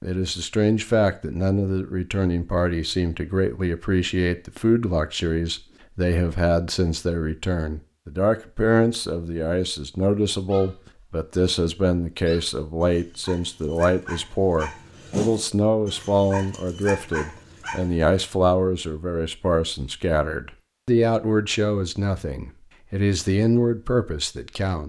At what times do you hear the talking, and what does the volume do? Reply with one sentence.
The talking can be heard from 0.0 to 24.8 s, at a steady volume.